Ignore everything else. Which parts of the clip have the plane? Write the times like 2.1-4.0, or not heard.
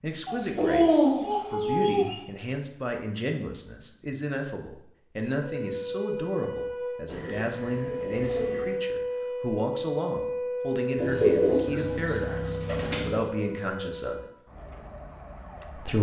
not heard.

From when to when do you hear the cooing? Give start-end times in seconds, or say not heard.
0.2-2.1, 7.0-8.8, 10.9-13.2.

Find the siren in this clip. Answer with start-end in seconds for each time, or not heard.
5.5-15.9.